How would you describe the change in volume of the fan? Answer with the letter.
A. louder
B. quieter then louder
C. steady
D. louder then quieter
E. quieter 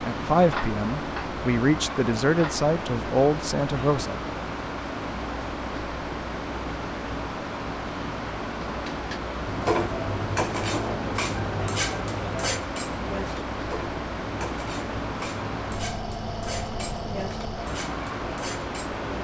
C.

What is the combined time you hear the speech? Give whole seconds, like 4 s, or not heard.
4 s.